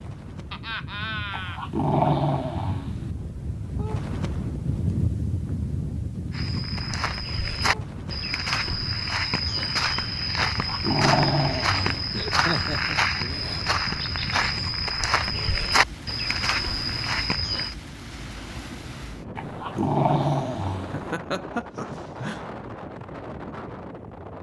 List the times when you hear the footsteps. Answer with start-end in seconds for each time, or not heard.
6.3-17.8.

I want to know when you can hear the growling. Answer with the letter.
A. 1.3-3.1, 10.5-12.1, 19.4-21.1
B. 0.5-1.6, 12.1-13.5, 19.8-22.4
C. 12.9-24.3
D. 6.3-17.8
A.